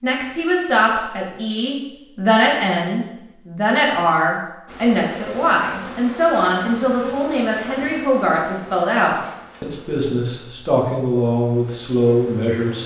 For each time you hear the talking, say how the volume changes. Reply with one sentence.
You can hear the talking from 0.0 to 12.8 s, at a steady volume.